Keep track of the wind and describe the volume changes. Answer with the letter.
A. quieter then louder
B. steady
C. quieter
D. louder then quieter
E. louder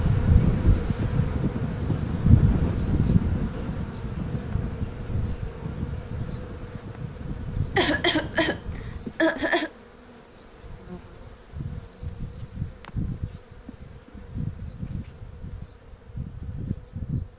C.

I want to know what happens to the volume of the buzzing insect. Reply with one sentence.
The volume of the buzzing insect goes down.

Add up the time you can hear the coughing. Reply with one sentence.
You can hear the coughing for 2 seconds altogether.